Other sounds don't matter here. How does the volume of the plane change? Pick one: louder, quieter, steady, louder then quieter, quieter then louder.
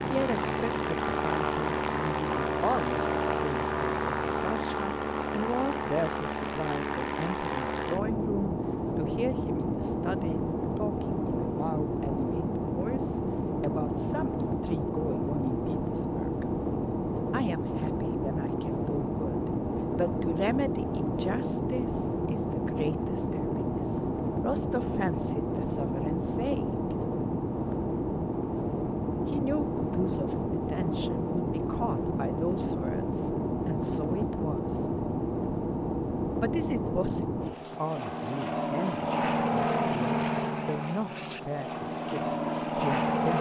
steady.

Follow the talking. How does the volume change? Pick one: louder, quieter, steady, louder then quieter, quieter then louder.
steady.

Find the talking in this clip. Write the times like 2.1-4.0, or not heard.
0.1-16.4, 17.3-26.9, 29.3-34.9, 36.4-43.3.